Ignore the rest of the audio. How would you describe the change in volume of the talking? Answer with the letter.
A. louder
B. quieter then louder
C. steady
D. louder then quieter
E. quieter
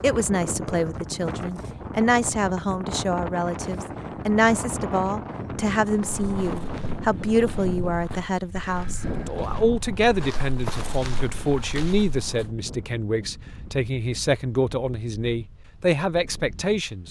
C.